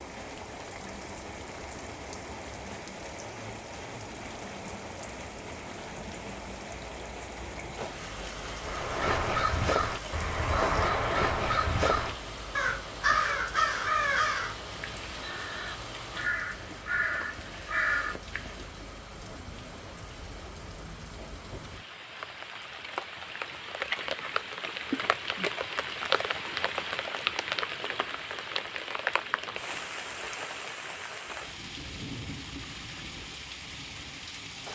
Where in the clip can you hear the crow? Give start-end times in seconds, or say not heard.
8.6-18.6.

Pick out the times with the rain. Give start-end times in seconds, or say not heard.
0.0-34.7.